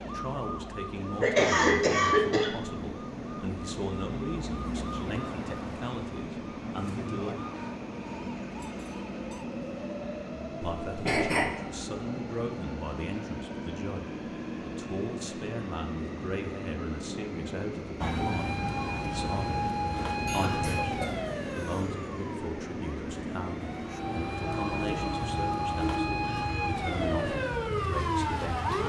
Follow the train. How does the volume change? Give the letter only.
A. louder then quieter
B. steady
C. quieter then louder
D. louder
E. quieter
B.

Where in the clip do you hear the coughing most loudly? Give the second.
2 s.